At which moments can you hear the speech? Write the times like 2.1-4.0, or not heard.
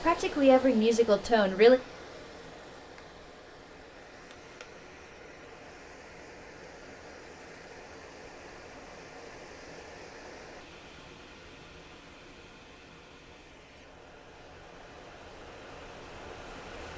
0.0-1.8.